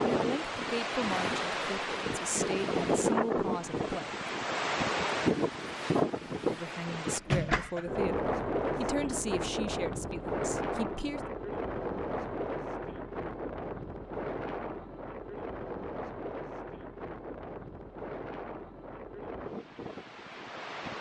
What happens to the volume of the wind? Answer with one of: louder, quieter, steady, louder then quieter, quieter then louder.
quieter.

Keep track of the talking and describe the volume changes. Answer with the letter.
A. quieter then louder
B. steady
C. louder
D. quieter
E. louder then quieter
B.